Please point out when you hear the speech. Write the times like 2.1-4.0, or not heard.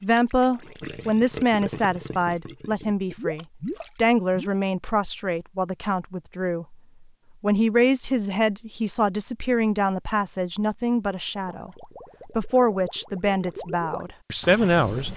0.0-6.8, 7.4-15.1.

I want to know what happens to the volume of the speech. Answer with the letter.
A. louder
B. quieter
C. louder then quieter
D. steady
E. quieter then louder
D.